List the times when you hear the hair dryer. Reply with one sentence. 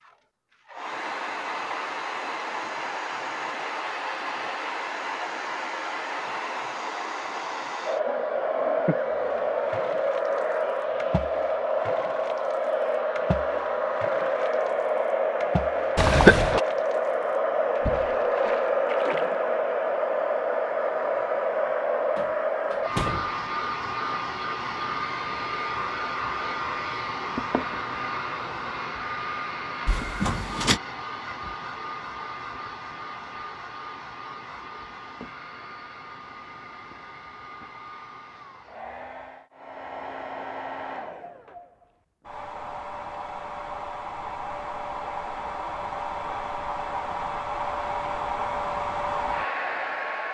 You can hear the hair dryer from 0.1 to 50.2 s.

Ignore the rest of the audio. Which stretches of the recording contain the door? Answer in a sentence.
The door can be heard from 22.1 to 23.3 s and from 29.9 to 30.8 s.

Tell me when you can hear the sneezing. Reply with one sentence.
You can hear the sneezing from 15.9 to 16.6 s.